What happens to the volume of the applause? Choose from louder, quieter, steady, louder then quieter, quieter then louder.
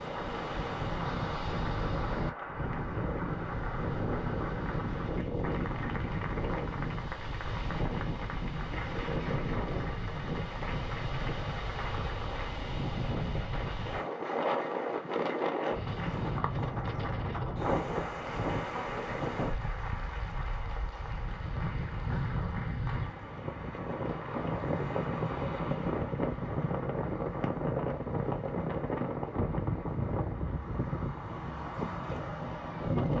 quieter.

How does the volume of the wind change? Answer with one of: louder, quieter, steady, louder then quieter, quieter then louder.
steady.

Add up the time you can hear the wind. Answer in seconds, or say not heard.
33 s.